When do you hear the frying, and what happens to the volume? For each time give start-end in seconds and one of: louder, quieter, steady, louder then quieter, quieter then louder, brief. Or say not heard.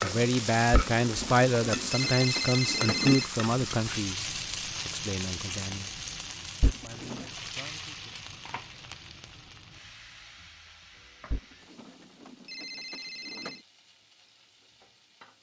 0.0-15.3 quieter.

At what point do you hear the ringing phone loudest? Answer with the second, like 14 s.
3 s.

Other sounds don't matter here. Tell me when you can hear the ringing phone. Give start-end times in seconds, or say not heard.
0.7-3.2, 6.6-7.2, 11.3-13.6.